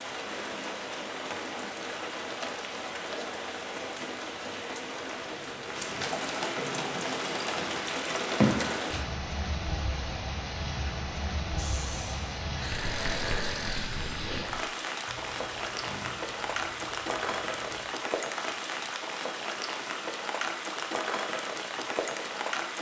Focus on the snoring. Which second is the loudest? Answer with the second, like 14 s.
13 s.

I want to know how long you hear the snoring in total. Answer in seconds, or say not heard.
6 s.